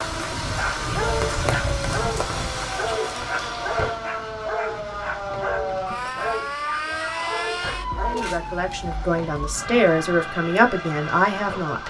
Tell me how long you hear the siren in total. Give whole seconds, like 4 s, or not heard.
12 s.